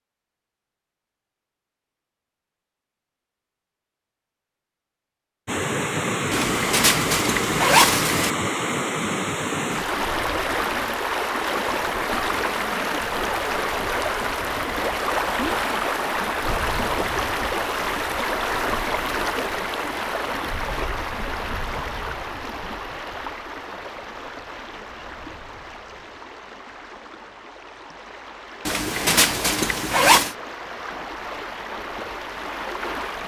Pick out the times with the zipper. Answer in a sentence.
The zipper can be heard from 6.3 to 8.3 s and from 28.6 to 30.4 s.